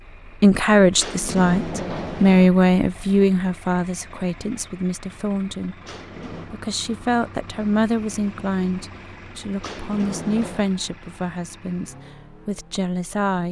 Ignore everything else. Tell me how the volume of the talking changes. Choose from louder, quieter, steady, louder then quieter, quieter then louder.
quieter.